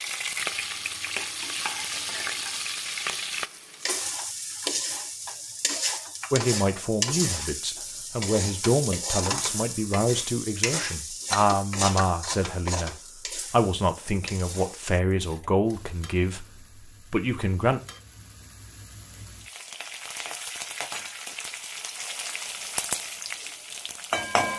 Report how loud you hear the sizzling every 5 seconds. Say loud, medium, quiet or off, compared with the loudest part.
loud, loud, loud, quiet, loud.